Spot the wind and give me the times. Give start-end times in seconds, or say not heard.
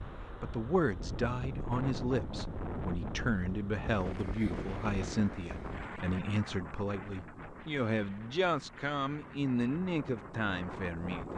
0.0-11.3.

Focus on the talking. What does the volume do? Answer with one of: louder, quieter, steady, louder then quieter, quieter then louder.
steady.